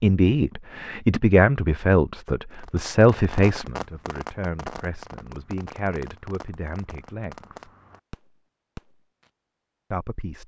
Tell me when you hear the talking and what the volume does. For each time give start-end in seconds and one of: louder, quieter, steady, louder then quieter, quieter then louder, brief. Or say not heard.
0.0-7.7 quieter
9.9-10.4 brief.